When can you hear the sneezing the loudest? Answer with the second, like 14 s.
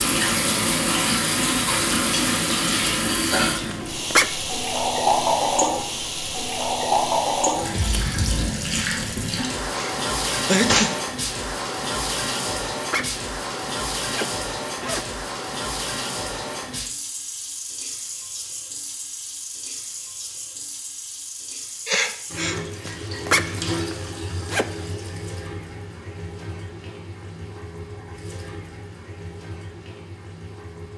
11 s.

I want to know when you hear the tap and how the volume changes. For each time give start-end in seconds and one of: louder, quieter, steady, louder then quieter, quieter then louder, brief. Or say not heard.
0.0-30.9 quieter.